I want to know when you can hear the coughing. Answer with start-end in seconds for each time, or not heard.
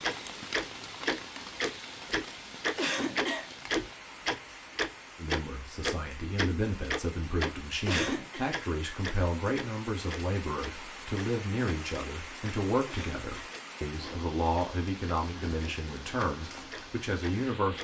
2.8-3.5, 7.8-8.4, 12.8-13.5.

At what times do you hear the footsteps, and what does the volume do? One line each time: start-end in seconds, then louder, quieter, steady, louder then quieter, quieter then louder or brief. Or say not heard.
not heard.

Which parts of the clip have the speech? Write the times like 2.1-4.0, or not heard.
5.2-17.7.